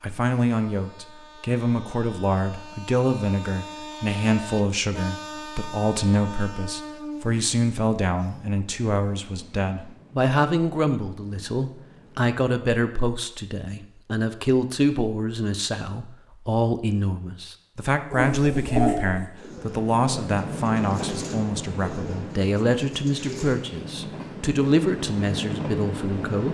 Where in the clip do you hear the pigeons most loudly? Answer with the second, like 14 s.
19 s.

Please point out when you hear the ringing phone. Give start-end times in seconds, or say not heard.
not heard.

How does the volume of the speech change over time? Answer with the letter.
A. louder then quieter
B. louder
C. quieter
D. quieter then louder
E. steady
E.